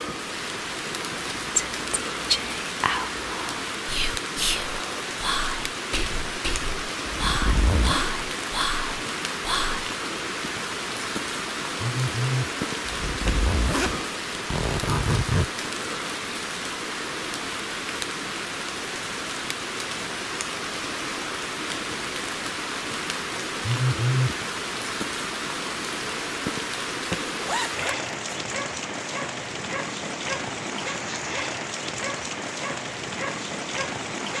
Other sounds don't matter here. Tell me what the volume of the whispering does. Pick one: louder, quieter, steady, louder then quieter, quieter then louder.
steady.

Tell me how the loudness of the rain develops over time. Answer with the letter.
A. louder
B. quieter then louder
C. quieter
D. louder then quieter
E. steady
E.